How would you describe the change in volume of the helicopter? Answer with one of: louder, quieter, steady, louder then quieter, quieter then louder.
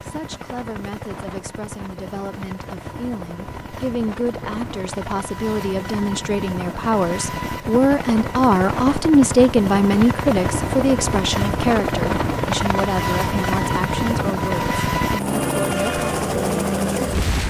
louder.